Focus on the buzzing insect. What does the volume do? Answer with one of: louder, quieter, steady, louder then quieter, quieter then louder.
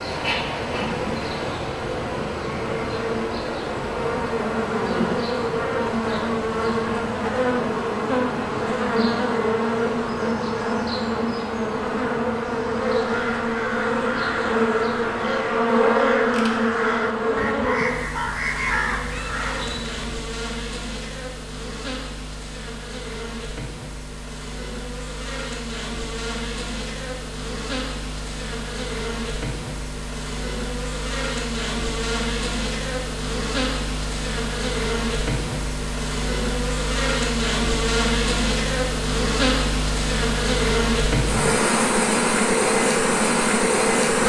quieter then louder.